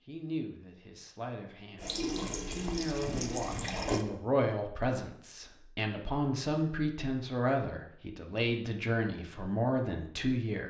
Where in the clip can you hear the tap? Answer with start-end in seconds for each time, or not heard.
1.8-4.0.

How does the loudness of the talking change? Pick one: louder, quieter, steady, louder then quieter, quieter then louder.
louder.